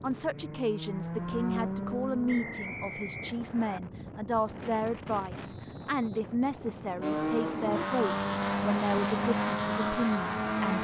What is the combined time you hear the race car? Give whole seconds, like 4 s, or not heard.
7 s.